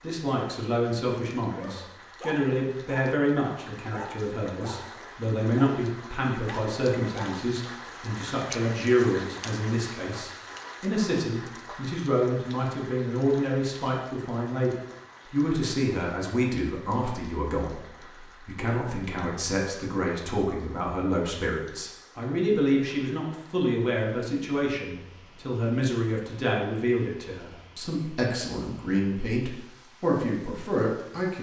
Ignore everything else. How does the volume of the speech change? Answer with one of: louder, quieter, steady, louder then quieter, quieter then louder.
steady.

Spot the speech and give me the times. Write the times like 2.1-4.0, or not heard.
0.0-31.3.